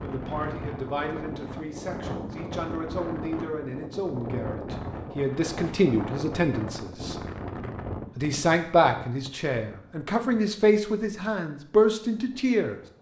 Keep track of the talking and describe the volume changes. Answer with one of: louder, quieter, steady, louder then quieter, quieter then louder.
louder.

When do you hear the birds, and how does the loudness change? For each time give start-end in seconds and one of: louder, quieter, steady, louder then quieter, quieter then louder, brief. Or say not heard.
not heard.